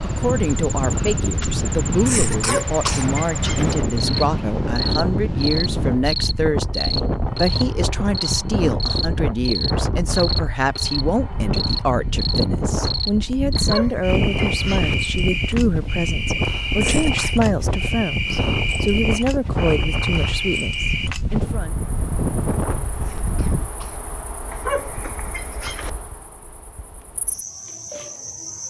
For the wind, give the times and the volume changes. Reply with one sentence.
The wind can be heard from 0.0 to 23.7 s, at a steady volume.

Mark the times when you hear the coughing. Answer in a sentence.
You can hear the coughing from 2.0 to 3.1 s, from 16.8 to 17.4 s and from 23.0 to 24.1 s.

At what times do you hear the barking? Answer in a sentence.
The barking can be heard from 2.3 to 3.8 s, from 13.6 to 14.9 s and from 24.5 to 25.9 s.